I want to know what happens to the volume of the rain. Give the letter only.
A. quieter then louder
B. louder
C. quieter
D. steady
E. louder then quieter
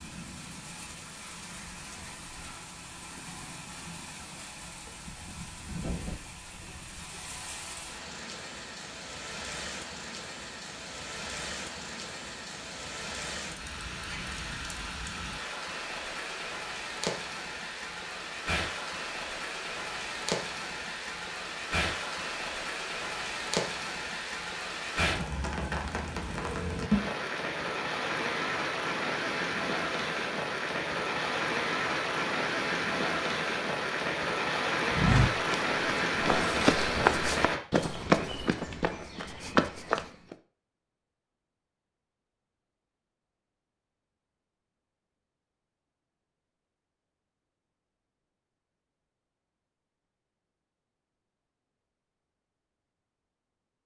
B.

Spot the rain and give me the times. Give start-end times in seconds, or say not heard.
0.0-37.6.